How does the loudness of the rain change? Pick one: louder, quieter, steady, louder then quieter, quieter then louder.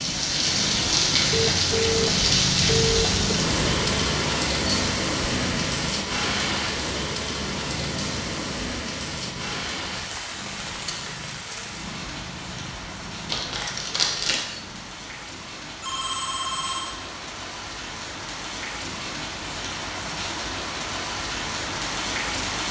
quieter then louder.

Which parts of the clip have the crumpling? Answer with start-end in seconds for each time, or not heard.
13.2-14.4.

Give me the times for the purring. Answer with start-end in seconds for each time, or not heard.
0.0-15.3.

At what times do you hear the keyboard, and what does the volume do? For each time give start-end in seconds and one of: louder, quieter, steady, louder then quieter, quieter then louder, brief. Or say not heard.
not heard.